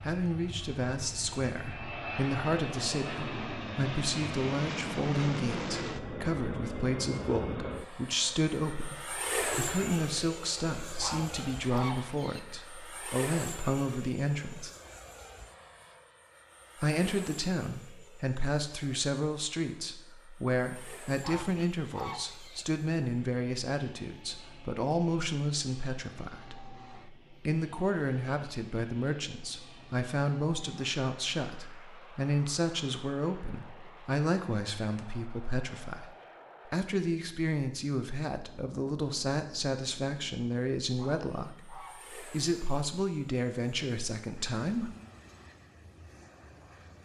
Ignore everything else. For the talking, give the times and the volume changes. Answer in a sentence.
The talking can be heard from 0.0 to 14.7 s, at a steady volume; and from 16.8 to 44.9 s, at a steady volume.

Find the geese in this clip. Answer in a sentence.
You can hear the geese from 11.0 to 12.4 s, from 21.2 to 22.6 s and from 41.0 to 42.2 s.